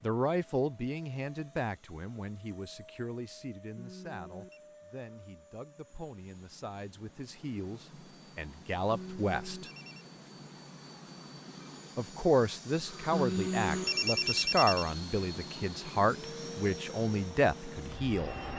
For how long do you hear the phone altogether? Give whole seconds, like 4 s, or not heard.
4 s.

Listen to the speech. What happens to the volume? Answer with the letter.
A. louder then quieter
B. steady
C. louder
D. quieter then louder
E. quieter
D.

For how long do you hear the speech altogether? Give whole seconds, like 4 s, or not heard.
16 s.